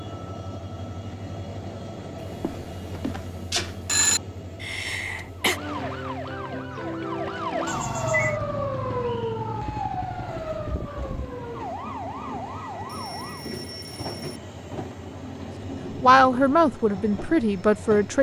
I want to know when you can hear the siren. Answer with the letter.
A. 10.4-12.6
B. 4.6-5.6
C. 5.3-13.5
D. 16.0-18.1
C.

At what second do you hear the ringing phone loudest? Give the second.
4 s.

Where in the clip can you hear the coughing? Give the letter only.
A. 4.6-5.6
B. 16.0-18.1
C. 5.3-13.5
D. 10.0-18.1
A.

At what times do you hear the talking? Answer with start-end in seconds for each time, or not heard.
16.0-18.1.